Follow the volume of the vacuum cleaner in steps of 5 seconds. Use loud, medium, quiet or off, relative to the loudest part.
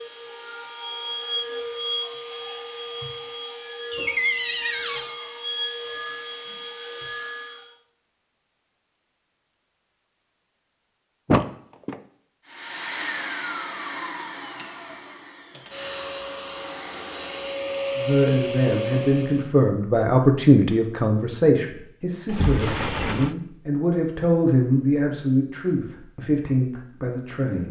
loud, loud, loud, loud, off, off.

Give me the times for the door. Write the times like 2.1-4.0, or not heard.
3.9-5.2, 11.2-12.0, 22.2-23.4.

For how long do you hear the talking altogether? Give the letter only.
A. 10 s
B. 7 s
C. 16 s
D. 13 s
A.